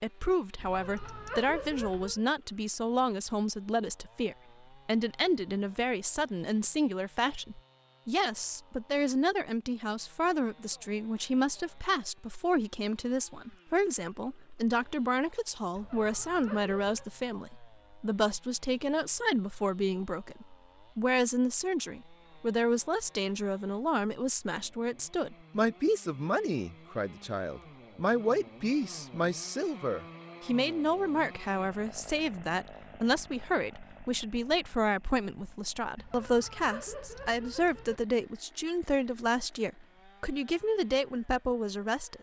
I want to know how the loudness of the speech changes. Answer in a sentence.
The loudness of the speech stays about the same.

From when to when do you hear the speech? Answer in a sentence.
You can hear the speech from 0.0 to 42.1 s.